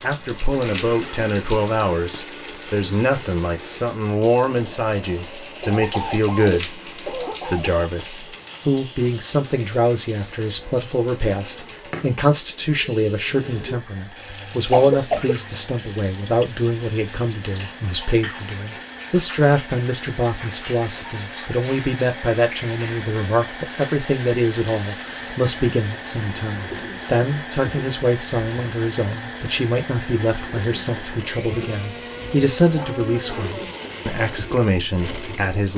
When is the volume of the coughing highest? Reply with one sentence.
The volume of the coughing peaks at 15 seconds.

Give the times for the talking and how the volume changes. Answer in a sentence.
The talking can be heard from 0.0 to 35.7 s, at a steady volume.